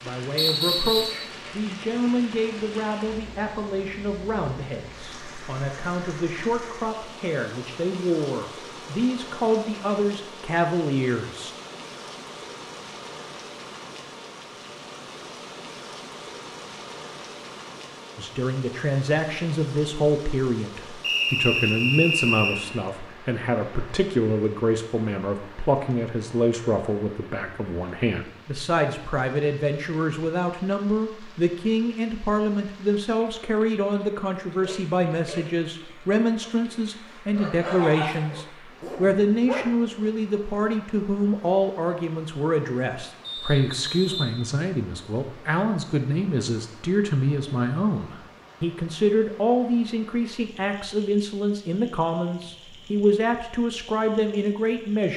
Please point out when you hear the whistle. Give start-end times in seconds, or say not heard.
0.3-1.2, 21.0-22.6, 43.2-44.2.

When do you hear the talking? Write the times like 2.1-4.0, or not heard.
0.0-11.5, 18.1-55.1.